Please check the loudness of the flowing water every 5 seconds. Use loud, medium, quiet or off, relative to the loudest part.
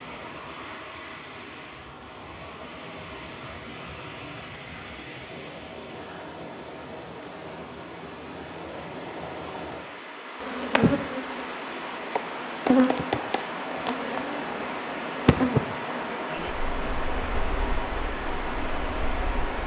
medium, medium, loud, loud.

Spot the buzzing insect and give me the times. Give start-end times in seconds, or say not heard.
10.4-19.6.